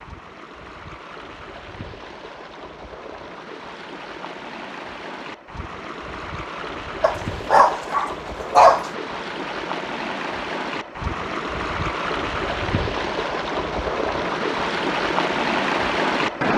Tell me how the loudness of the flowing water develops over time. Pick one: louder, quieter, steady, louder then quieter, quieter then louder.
louder.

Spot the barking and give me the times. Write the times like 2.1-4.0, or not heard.
7.0-8.8.